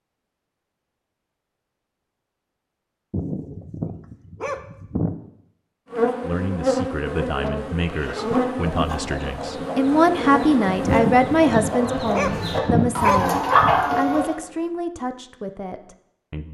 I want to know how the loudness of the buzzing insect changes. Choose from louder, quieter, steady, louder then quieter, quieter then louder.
quieter.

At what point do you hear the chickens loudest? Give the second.
14 s.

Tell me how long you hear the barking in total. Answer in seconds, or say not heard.
5 s.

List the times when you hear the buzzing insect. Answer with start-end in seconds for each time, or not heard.
5.9-14.7.